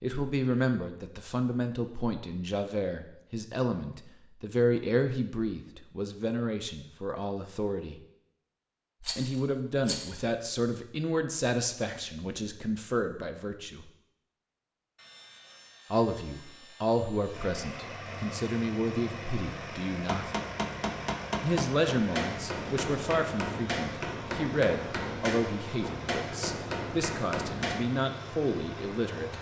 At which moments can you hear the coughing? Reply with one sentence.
You can't hear the coughing here.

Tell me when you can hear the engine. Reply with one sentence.
The engine can be heard from 17.3 to 29.3 s.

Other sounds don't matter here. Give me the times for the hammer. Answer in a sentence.
You can hear the hammer from 20.1 to 27.9 s.